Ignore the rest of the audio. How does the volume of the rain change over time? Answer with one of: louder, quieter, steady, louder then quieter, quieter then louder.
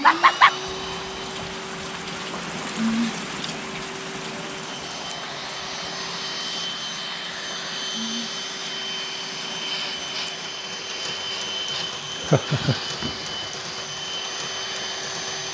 quieter.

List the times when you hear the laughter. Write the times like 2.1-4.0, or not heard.
0.0-0.6, 12.2-12.8.